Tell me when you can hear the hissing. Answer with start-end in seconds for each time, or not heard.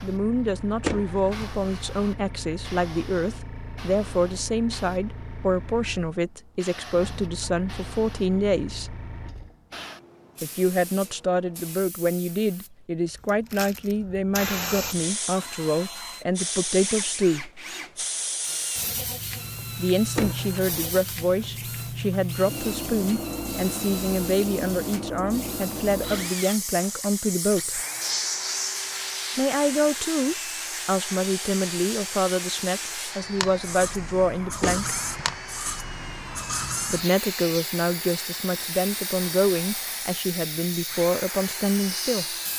0.0-42.5.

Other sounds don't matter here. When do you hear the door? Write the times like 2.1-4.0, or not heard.
0.8-1.6, 20.1-20.9, 34.6-35.3.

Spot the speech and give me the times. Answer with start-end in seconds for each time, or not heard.
0.0-8.9, 10.4-17.5, 19.8-27.8, 29.4-35.0, 36.9-42.2.